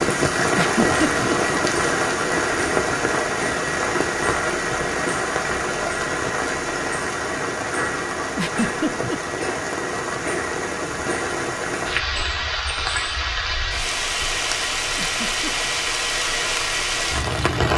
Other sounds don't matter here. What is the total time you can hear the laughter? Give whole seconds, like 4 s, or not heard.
2 s.